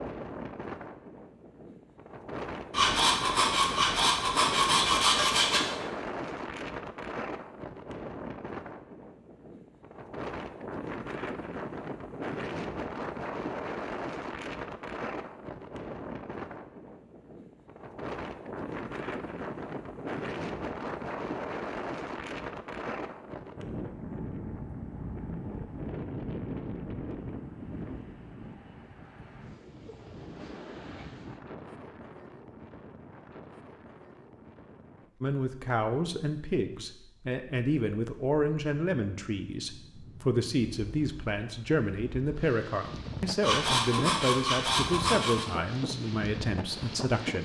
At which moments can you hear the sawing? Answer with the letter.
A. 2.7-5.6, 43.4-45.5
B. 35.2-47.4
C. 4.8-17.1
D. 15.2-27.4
A.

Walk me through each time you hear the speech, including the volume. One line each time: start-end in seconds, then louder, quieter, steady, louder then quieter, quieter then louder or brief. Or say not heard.
35.2-47.4 steady.